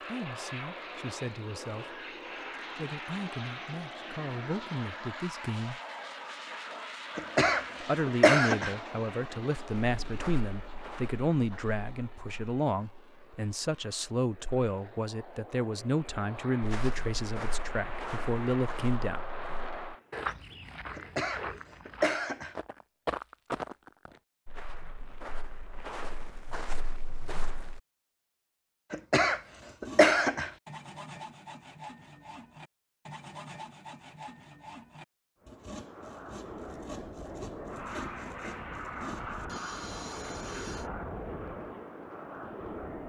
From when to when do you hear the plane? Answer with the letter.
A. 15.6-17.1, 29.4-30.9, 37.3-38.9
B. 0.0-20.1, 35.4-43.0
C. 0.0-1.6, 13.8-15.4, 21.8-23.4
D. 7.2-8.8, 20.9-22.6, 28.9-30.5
B.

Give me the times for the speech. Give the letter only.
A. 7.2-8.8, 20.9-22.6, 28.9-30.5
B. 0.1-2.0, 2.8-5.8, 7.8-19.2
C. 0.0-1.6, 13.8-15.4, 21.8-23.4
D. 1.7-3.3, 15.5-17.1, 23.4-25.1
B.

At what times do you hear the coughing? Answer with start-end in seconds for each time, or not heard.
7.2-8.8, 20.9-22.6, 28.9-30.5.